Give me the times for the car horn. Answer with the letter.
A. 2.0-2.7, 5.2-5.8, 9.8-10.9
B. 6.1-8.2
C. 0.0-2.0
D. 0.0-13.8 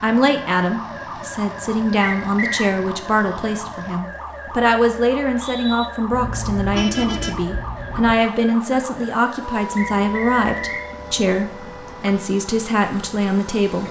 B.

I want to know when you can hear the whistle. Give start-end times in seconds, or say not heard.
2.0-2.7, 5.2-5.8, 9.8-10.9.